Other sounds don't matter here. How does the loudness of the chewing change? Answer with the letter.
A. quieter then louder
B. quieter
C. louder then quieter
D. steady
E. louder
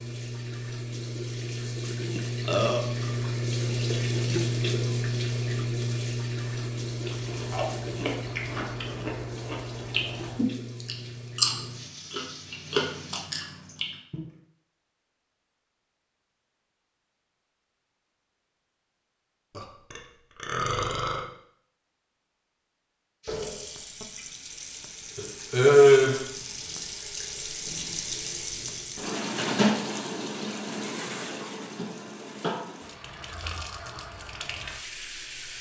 C.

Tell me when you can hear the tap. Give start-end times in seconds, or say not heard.
0.0-13.2, 23.2-35.5.